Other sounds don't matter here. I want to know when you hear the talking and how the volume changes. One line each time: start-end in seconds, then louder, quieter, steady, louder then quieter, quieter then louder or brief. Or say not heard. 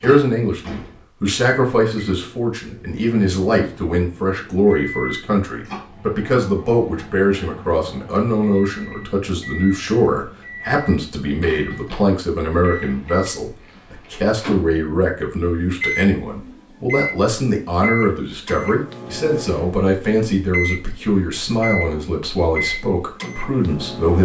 0.0-24.1 steady.